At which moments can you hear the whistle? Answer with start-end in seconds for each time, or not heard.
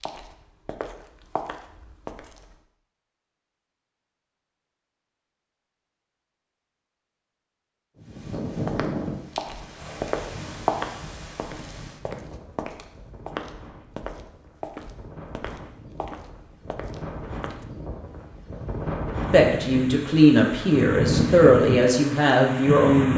not heard.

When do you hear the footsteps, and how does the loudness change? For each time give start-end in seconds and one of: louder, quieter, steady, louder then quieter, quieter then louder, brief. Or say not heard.
0.0-2.5 brief
8.6-17.9 quieter.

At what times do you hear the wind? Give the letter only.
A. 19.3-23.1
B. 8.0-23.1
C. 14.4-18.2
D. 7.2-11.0
B.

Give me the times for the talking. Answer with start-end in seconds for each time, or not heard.
19.3-23.1.